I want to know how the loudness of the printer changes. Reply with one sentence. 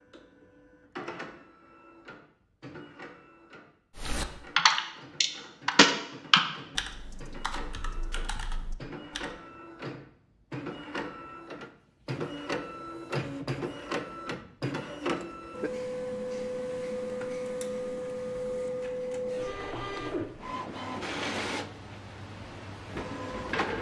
The loudness of the printer goes up.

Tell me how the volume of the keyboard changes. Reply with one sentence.
The volume of the keyboard goes down.